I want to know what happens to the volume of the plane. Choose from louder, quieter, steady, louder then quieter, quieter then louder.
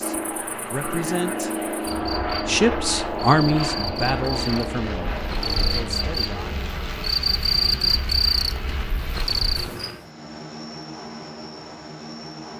quieter.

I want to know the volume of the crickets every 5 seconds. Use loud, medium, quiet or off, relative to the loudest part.
medium, loud, off.